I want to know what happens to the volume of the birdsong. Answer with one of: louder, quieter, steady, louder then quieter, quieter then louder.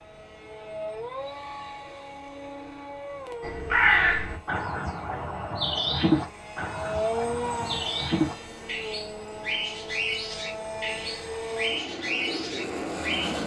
quieter.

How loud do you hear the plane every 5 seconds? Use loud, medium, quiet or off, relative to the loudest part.
medium, loud, loud.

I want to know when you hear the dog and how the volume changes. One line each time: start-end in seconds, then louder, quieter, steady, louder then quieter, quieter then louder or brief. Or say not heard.
not heard.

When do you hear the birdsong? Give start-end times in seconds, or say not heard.
3.4-13.4.